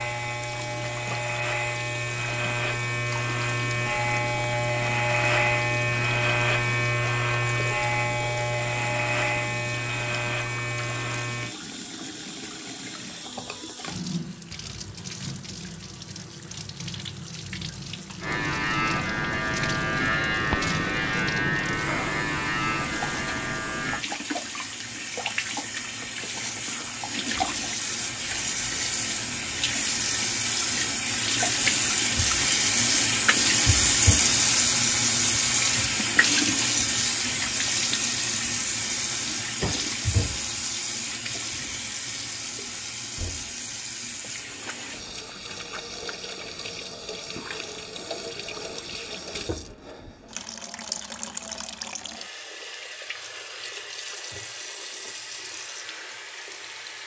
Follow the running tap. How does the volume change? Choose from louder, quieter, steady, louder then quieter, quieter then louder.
louder then quieter.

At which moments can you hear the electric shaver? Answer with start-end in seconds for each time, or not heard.
0.0-11.6, 18.2-24.1.